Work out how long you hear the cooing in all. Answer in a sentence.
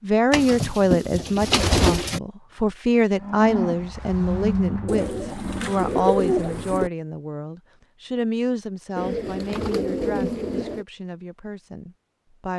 The cooing can be heard for 6 seconds in total.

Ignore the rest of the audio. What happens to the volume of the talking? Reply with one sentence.
The volume of the talking goes down.